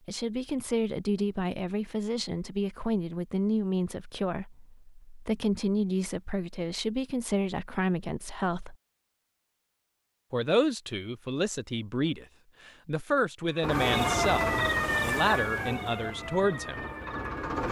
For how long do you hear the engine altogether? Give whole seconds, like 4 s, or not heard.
4 s.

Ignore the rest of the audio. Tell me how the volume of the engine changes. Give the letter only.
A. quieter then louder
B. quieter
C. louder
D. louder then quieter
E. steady
A.